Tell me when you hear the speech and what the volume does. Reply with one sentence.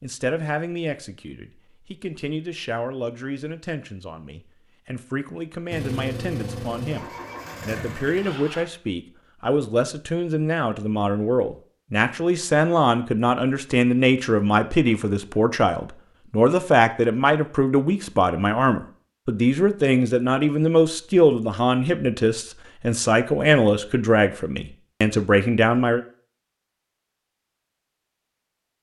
The speech can be heard from 0.0 to 26.0 s, getting louder.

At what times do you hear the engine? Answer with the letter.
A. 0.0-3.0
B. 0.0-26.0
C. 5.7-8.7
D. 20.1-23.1
C.